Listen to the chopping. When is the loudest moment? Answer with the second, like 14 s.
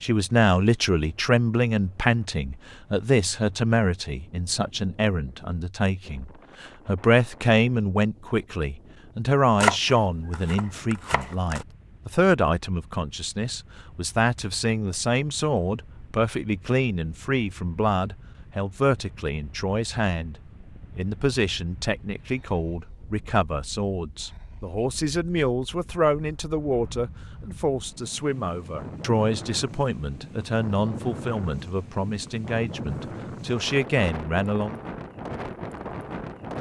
10 s.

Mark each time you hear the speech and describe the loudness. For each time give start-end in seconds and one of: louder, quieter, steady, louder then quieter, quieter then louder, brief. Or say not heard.
0.0-20.4 steady
20.9-34.8 steady.